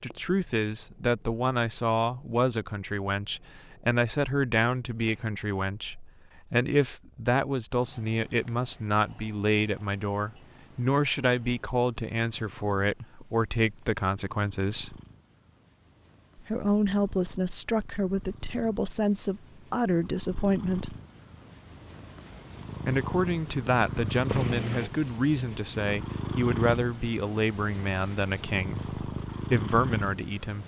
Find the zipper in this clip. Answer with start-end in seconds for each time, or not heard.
24.2-24.9.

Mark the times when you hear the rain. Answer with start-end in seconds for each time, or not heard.
not heard.